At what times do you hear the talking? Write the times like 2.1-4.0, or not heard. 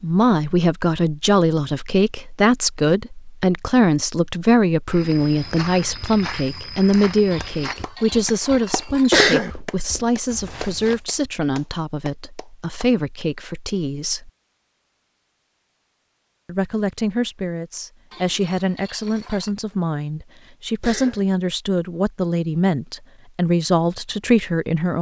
0.0-14.3, 16.4-24.9.